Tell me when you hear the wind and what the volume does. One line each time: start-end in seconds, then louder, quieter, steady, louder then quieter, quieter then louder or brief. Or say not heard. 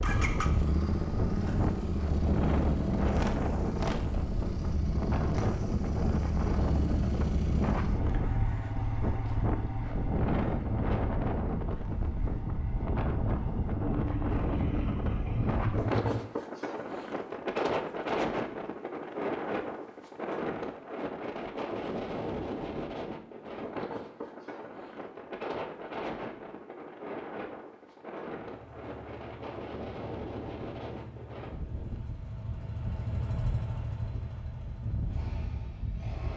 0.0-36.3 quieter.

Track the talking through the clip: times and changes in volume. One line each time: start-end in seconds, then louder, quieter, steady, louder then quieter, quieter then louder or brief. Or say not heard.
not heard.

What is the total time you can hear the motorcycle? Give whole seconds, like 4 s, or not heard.
24 s.